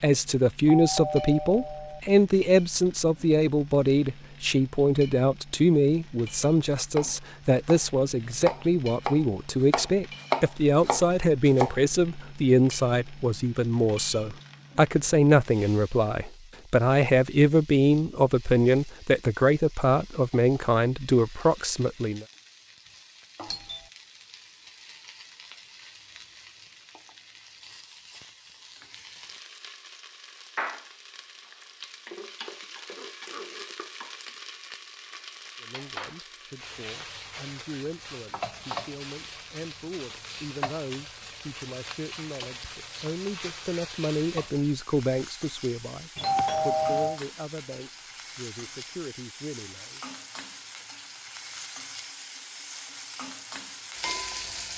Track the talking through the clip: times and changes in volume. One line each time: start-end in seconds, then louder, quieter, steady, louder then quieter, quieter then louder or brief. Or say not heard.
0.0-22.2 steady
35.6-50.0 louder then quieter.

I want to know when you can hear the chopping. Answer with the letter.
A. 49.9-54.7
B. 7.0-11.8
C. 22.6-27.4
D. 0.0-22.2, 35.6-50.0
B.